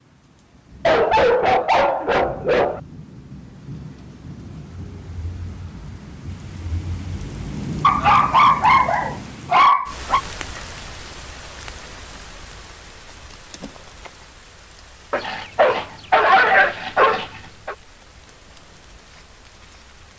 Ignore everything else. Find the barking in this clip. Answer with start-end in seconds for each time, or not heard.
0.8-2.8, 7.8-10.2, 15.1-17.8.